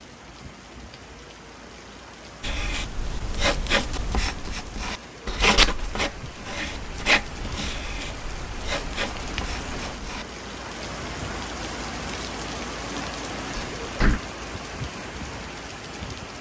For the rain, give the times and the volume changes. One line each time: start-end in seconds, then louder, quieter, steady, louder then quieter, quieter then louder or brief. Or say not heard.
0.0-16.3 louder.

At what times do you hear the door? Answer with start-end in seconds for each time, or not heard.
13.6-14.2.